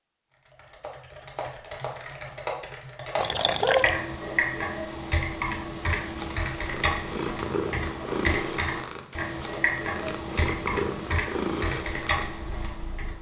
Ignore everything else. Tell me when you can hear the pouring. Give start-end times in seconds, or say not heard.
3.1-4.0.